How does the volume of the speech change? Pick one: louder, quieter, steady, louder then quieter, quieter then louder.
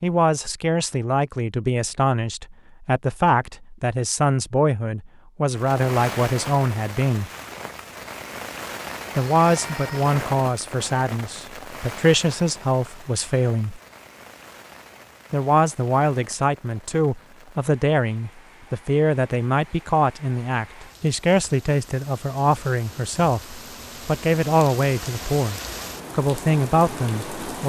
steady.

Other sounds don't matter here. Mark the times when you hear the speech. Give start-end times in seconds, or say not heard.
0.0-7.3, 9.2-13.8, 15.3-27.6.